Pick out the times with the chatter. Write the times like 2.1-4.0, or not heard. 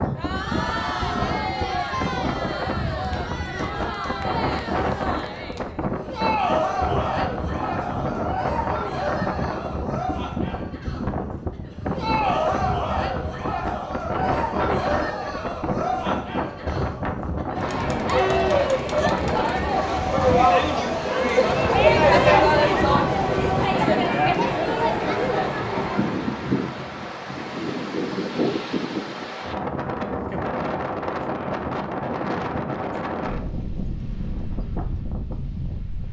0.0-26.2.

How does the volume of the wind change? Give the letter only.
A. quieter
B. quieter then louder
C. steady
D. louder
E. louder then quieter
C.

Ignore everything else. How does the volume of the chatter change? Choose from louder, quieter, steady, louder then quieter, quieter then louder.
louder.